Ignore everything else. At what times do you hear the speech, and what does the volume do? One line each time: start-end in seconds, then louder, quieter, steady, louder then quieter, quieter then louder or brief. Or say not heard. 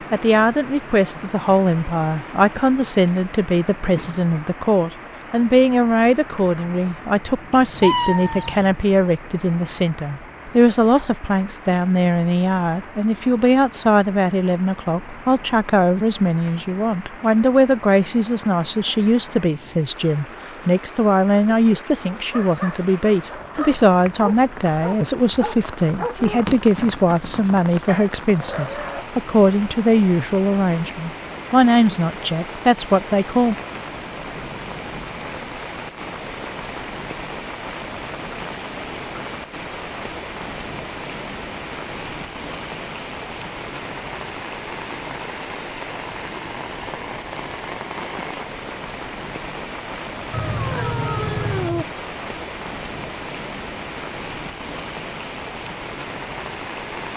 0.1-33.5 steady.